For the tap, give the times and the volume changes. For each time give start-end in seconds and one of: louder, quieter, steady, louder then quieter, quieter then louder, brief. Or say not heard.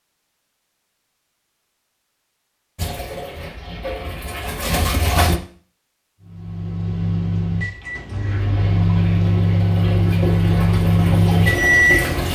2.8-5.4 brief
8.2-12.3 louder.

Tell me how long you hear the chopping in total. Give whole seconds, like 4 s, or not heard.
not heard.